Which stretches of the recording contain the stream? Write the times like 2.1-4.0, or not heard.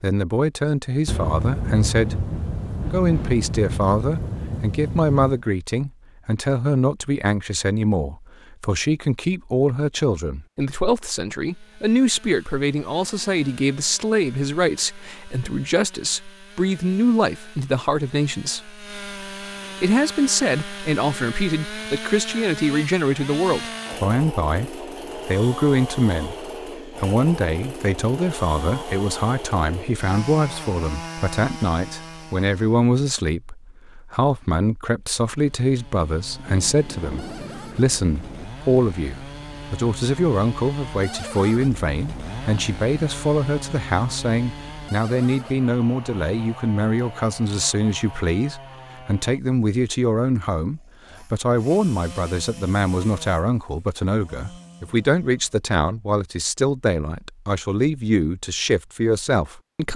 not heard.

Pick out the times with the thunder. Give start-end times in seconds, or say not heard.
1.1-5.5, 36.5-38.5.